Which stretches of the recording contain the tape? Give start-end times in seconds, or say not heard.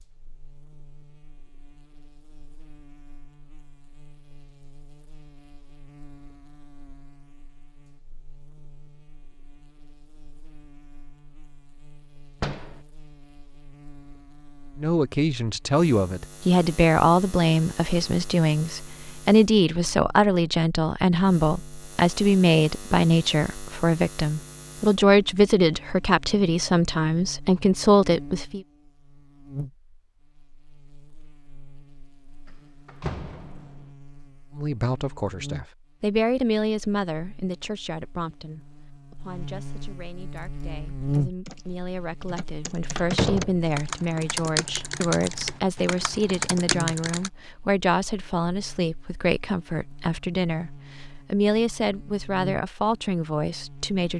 not heard.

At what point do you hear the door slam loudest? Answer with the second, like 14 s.
43 s.